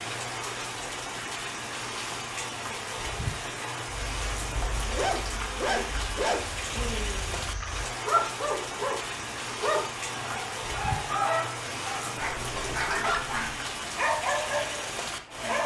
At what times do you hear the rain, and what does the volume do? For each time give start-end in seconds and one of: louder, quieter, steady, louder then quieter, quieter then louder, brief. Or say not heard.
0.0-15.6 steady.